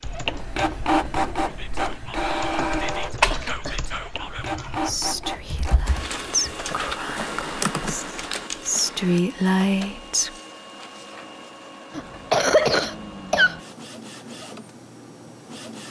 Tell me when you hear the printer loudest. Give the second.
3 s.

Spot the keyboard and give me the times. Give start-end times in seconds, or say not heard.
0.0-9.2.